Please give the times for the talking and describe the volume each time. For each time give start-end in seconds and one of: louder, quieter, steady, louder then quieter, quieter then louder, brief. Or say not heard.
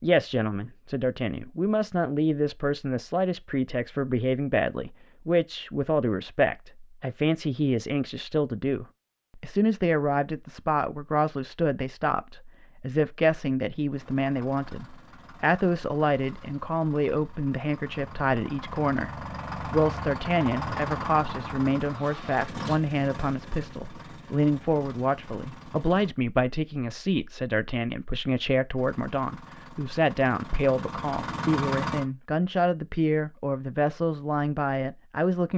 0.0-35.5 steady.